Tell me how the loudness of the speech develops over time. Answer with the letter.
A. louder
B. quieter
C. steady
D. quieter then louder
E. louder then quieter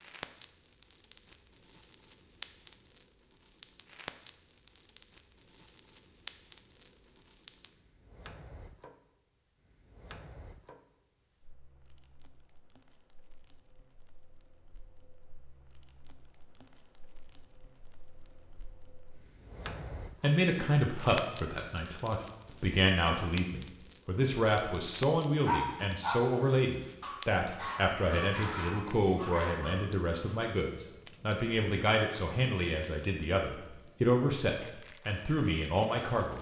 C.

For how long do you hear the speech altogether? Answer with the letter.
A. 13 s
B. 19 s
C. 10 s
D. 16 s
D.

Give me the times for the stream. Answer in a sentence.
The stream can't be heard in this clip.